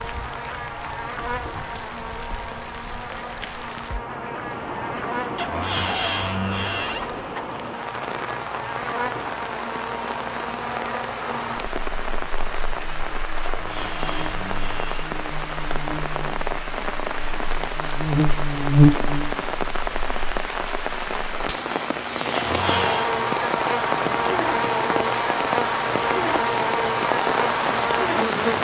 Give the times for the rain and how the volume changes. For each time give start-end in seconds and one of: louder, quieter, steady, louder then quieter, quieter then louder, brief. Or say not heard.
0.0-28.5 louder.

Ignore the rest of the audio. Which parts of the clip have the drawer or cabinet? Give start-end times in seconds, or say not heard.
5.3-7.1, 13.4-15.0, 22.3-23.1.